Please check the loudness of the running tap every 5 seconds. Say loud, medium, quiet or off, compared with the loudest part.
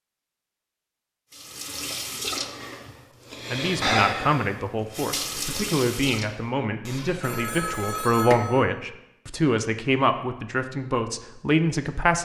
loud, loud, off.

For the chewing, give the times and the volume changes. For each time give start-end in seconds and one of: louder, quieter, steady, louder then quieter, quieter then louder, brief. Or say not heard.
not heard.